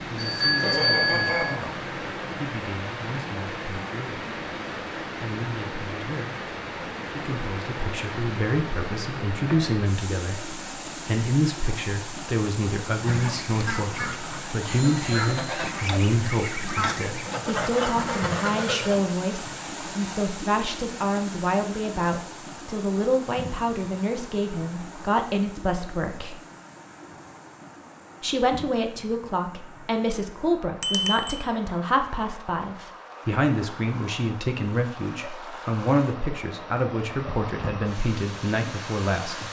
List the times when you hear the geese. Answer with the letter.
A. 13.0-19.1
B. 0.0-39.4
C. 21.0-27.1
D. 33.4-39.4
A.